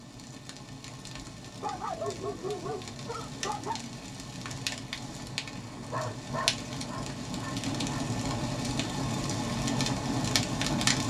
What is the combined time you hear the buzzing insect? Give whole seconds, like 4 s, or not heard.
not heard.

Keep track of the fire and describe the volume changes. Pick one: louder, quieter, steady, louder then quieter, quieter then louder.
louder.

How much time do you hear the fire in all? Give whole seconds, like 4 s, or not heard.
11 s.